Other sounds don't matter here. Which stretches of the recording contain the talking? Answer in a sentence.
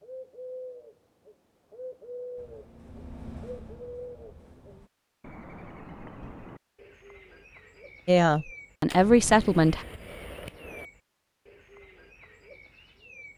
You can hear the talking from 8.1 to 9.8 s.